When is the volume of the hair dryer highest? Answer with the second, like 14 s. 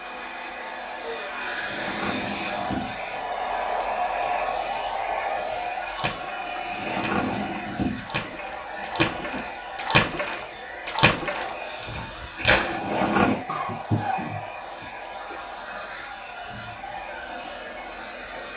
4 s.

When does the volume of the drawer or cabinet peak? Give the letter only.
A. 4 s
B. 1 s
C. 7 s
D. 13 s
D.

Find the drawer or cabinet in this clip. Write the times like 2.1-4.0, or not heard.
1.4-3.2, 6.4-8.3, 12.6-13.4.